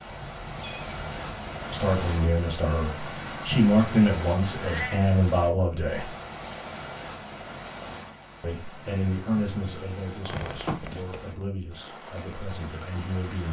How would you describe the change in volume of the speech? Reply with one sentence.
The volume of the speech goes down.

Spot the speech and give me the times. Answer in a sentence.
The speech can be heard from 1.7 to 6.1 s and from 8.4 to 13.4 s.